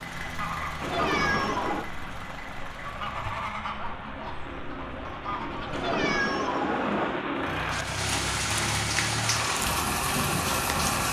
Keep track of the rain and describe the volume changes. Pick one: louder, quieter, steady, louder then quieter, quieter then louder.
louder.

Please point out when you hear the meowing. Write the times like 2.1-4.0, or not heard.
0.8-1.9, 5.7-7.2.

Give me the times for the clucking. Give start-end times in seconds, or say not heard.
0.2-6.0.